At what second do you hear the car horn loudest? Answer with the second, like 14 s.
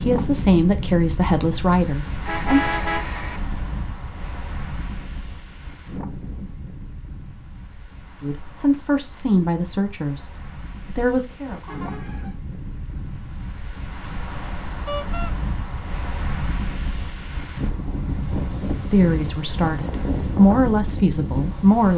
3 s.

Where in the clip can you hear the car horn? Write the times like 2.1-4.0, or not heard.
2.2-3.4, 11.7-12.3, 14.8-15.3.